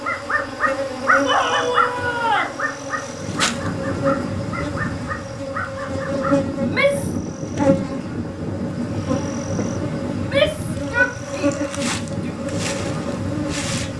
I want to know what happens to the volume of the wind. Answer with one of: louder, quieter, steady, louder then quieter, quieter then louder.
steady.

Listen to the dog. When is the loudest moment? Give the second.
1 s.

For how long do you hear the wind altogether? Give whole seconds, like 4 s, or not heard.
11 s.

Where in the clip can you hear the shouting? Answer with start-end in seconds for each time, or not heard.
1.2-2.6, 6.5-7.2, 10.1-12.1.